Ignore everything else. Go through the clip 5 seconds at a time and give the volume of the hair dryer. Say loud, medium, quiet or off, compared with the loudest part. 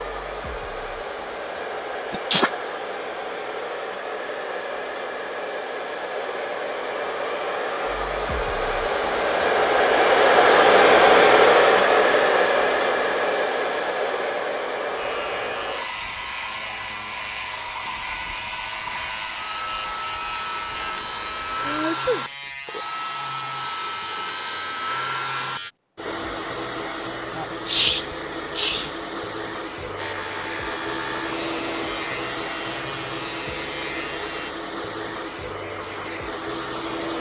quiet, medium, loud, quiet, quiet, quiet, quiet, quiet.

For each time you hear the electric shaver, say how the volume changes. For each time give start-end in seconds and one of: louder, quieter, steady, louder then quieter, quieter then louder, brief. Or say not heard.
14.9-25.7 steady
29.9-34.5 steady.